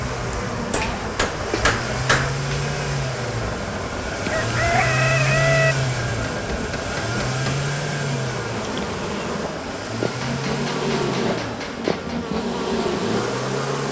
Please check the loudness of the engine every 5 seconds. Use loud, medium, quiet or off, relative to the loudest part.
loud, loud, medium.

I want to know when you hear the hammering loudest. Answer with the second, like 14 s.
2 s.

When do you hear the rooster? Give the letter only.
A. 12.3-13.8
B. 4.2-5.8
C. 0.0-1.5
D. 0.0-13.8
B.